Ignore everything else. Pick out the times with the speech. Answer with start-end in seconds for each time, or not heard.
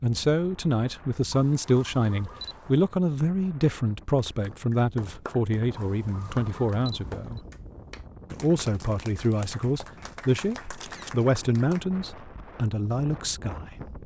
0.0-7.4, 8.3-13.9.